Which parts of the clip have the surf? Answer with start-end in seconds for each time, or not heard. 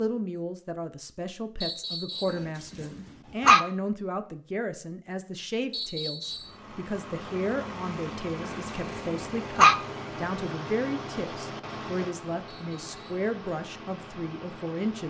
not heard.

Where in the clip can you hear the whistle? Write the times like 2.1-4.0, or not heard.
1.6-2.5, 5.7-6.5, 12.4-13.2.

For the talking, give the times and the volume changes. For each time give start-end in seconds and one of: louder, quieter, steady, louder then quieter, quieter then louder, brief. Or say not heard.
0.0-15.0 steady.